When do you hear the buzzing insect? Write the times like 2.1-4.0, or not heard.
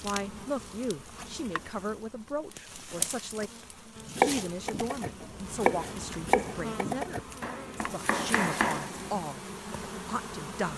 0.0-10.7.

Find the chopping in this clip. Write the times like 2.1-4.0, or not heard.
4.0-9.2.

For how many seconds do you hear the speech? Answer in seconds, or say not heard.
11 s.